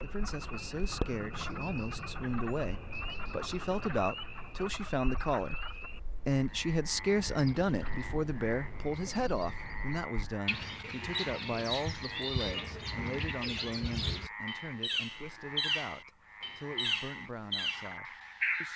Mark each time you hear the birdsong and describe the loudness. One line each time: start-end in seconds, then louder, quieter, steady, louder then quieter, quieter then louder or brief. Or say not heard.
0.0-18.7 quieter then louder.